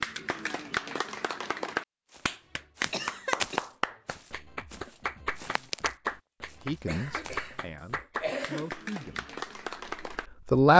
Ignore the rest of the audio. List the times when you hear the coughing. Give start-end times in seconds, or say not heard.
2.9-3.6, 6.8-8.8.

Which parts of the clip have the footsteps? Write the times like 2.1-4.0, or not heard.
2.1-7.5.